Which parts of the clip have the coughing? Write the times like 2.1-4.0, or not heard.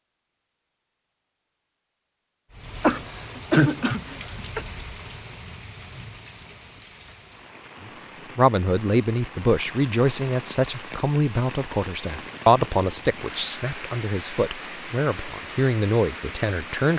2.8-4.7.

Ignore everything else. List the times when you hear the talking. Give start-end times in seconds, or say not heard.
8.3-16.9.